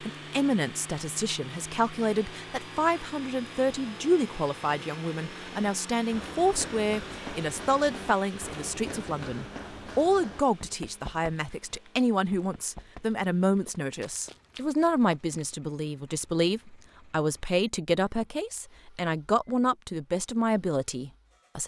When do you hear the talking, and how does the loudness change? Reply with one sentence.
The talking can be heard from 0.0 to 21.6 s, at a steady volume.